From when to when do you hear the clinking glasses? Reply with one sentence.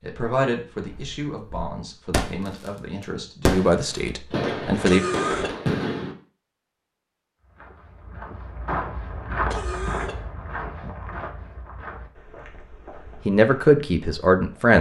You can't hear the clinking glasses here.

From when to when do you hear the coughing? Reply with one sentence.
You can hear the coughing from 4.8 to 5.5 s and from 9.5 to 10.2 s.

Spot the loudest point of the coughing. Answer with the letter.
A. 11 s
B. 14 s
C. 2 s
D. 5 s
D.